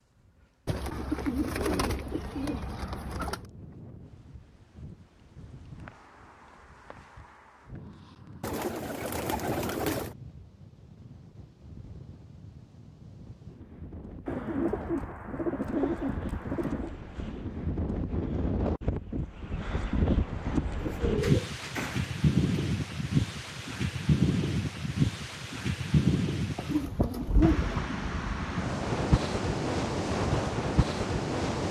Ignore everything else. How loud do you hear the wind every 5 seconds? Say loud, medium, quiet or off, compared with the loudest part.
quiet, quiet, quiet, medium, loud, loud, loud.